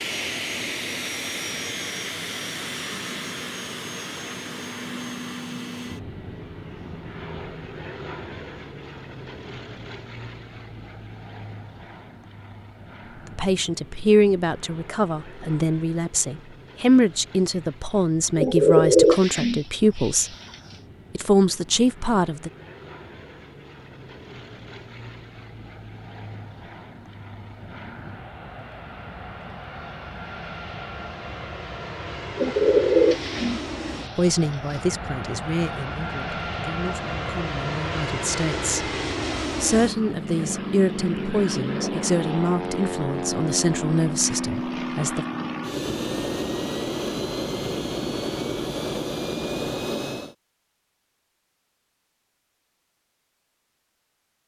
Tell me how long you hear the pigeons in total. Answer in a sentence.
You can hear the pigeons for 4 seconds altogether.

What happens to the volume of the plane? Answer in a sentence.
The loudness of the plane goes down, then up.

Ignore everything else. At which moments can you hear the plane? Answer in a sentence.
The plane can be heard from 0.0 to 50.4 s.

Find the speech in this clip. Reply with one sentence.
The speech can be heard from 13.3 to 20.3 s, from 21.1 to 22.5 s, from 34.1 to 38.9 s and from 39.6 to 45.2 s.